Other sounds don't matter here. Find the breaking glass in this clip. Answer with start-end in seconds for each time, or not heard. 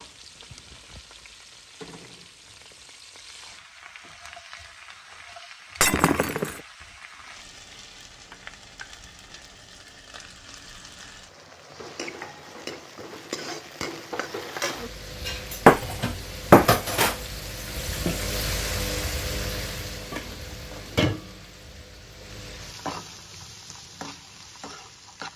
5.8-6.6, 15.7-16.9.